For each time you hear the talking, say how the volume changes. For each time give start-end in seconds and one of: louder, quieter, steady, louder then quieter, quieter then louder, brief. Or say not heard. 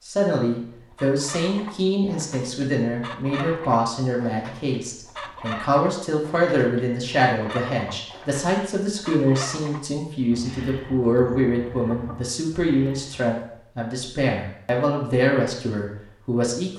0.1-16.7 steady.